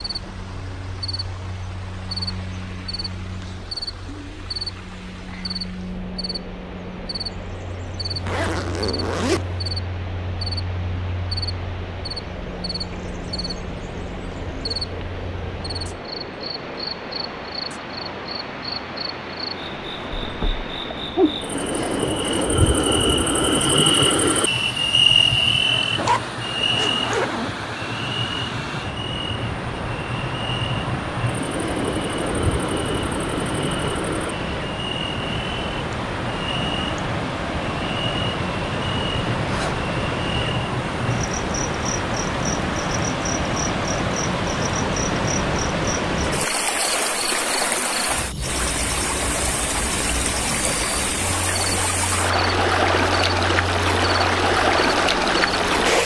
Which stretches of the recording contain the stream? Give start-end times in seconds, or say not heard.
0.0-56.0.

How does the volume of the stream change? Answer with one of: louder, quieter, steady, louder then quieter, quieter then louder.
louder.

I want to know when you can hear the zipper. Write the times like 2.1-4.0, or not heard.
8.1-9.7, 25.9-27.6, 39.4-39.9.